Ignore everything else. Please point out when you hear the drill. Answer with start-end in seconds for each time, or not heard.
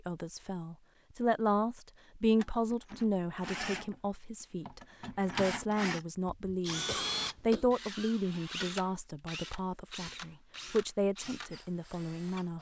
2.4-12.5.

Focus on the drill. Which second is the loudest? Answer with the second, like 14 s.
7 s.